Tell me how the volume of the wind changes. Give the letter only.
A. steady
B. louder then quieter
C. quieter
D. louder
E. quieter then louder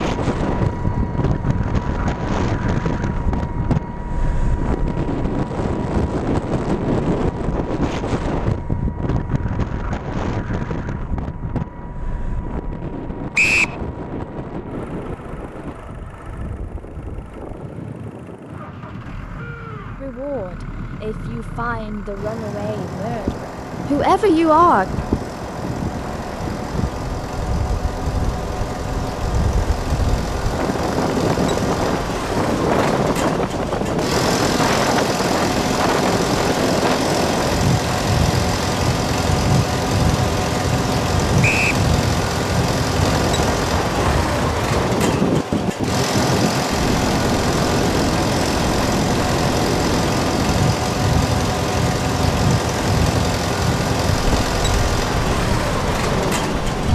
E.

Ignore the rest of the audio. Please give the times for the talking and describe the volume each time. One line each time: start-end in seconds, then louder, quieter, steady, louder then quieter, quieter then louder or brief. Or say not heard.
20.0-24.9 louder.